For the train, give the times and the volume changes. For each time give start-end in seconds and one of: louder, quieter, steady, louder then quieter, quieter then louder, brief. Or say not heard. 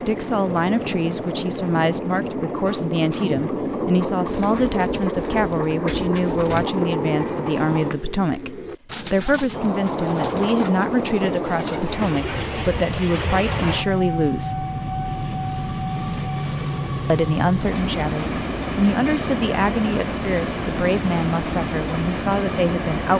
0.0-8.0 steady
9.5-23.1 steady.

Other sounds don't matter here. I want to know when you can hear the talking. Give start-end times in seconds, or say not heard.
0.1-14.7, 17.1-23.1.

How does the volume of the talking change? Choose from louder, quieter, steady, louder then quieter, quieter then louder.
steady.